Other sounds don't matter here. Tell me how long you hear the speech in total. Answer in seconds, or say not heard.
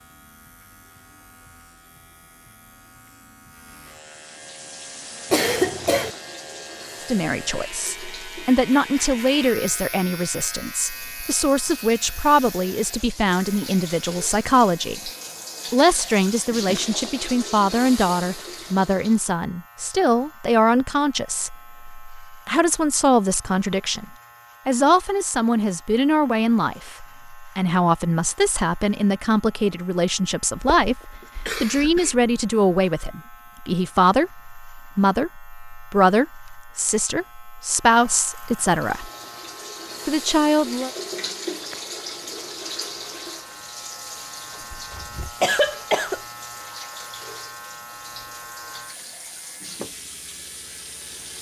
32 s.